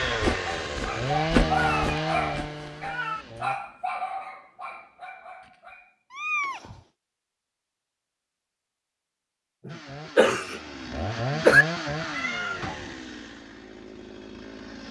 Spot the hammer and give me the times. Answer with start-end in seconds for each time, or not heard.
not heard.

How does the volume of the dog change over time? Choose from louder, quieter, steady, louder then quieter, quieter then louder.
quieter.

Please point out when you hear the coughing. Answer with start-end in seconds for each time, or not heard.
9.7-11.7.